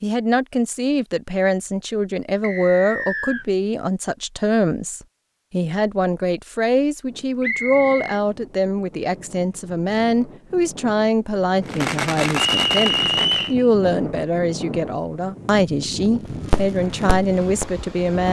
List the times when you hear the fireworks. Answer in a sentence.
You can hear the fireworks from 11.7 to 13.6 s and from 16.5 to 18.2 s.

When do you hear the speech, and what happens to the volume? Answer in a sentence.
The speech can be heard from 0.0 to 18.2 s, at a steady volume.